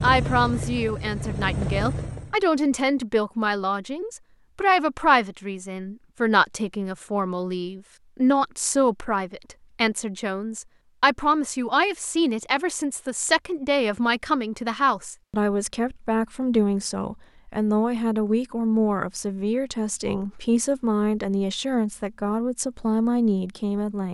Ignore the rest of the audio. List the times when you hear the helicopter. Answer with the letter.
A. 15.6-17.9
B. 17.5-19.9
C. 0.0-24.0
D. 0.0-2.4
D.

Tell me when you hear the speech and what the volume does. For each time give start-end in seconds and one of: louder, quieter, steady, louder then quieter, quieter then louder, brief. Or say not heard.
0.0-24.0 steady.